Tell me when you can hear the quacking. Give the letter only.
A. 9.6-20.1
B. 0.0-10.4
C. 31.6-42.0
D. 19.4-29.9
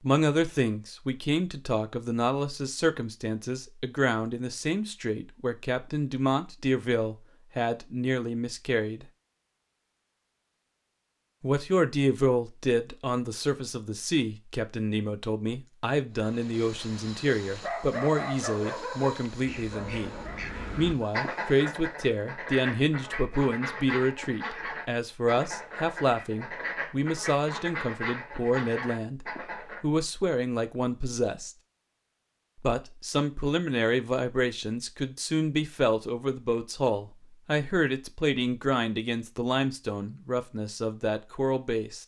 D.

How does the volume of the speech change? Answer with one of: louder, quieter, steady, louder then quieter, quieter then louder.
steady.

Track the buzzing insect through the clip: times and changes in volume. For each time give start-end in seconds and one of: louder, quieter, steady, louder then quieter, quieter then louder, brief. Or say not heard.
not heard.